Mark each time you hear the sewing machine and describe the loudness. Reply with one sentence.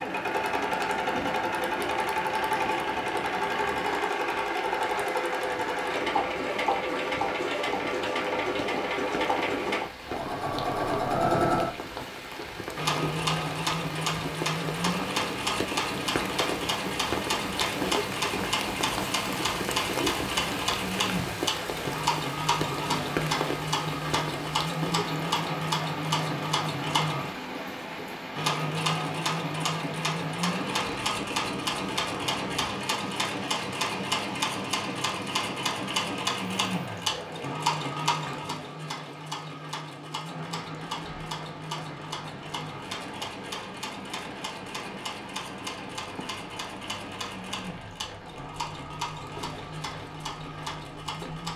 You can hear the sewing machine from 0.0 to 51.5 s, getting quieter.